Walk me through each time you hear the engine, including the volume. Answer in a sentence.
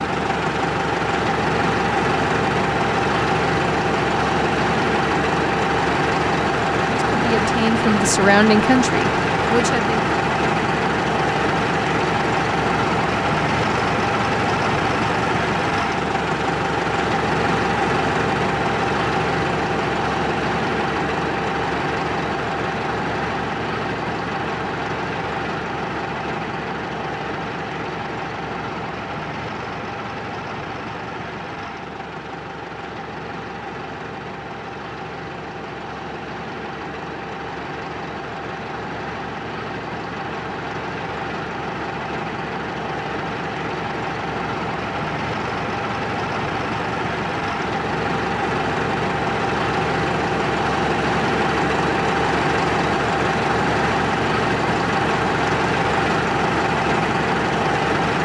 You can hear the engine from 0.0 to 58.1 s, getting quieter then louder.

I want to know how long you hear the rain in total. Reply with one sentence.
The rain can't be heard in this clip.